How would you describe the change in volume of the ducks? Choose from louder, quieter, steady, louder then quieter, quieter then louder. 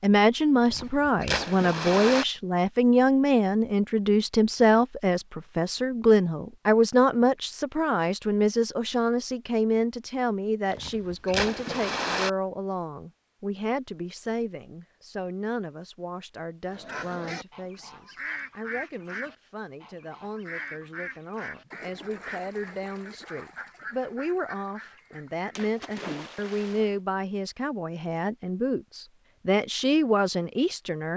quieter.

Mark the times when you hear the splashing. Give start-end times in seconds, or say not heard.
0.7-2.2, 10.7-12.3, 25.6-26.9.